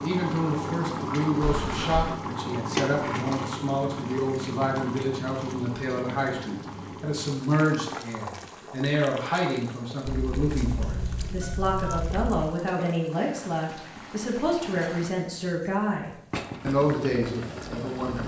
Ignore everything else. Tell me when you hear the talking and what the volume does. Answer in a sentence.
The talking can be heard from 0.0 to 18.2 s, at a steady volume.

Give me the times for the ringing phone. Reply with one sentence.
The ringing phone can be heard from 1.4 to 2.2 s and from 10.1 to 12.5 s.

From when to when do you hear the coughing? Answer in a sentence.
You can't hear the coughing here.